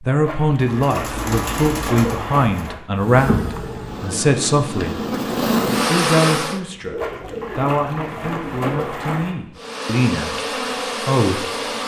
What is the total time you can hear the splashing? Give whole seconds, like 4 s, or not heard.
5 s.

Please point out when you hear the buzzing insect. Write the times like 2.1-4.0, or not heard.
3.0-6.6, 9.6-11.8.